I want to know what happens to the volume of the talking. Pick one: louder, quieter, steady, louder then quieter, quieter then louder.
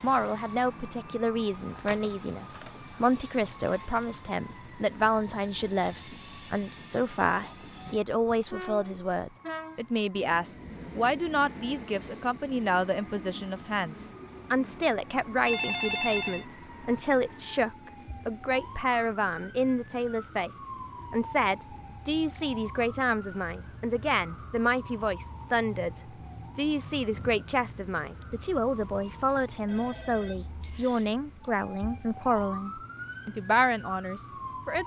steady.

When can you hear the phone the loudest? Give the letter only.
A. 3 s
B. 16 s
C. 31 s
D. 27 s
B.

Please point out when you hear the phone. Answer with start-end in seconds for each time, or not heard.
1.9-2.8, 15.4-16.4, 29.6-31.4.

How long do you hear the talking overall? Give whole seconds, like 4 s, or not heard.
35 s.